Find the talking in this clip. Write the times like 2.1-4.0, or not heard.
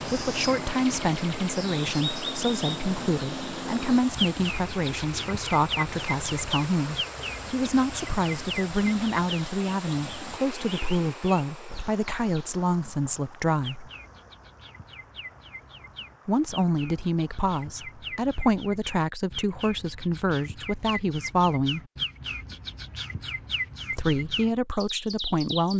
0.1-13.9, 16.2-21.8, 23.9-25.7.